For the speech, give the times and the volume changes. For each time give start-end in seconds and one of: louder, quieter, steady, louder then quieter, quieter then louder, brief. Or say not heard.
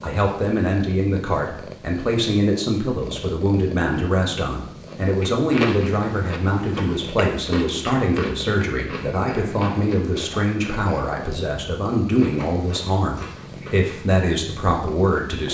0.0-15.4 steady.